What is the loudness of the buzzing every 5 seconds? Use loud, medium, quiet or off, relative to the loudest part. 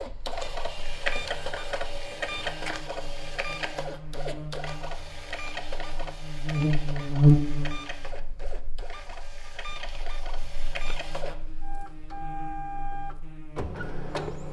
quiet, loud, quiet.